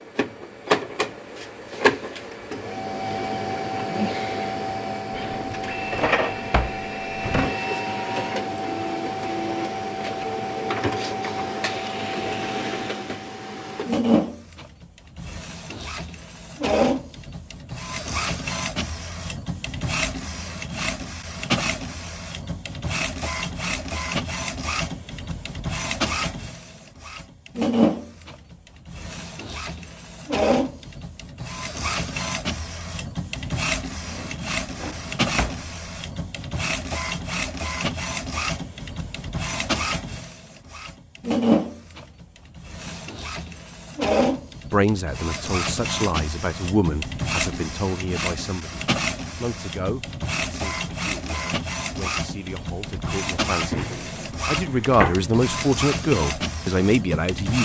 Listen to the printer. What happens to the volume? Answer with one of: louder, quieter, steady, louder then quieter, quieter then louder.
steady.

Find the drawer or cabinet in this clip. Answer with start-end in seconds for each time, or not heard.
5.1-7.5, 34.0-35.7, 53.6-55.3.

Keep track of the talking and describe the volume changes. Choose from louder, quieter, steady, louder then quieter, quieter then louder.
quieter then louder.